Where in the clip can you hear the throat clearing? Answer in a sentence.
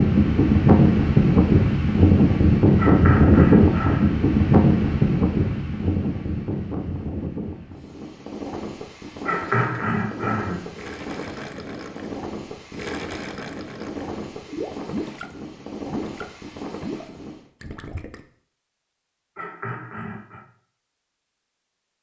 You can hear the throat clearing from 2.8 to 4.2 s, from 9.2 to 10.7 s and from 19.4 to 20.4 s.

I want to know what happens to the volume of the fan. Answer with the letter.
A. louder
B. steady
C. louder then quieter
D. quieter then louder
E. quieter
E.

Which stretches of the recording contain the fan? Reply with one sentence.
You can hear the fan from 0.0 to 17.5 s.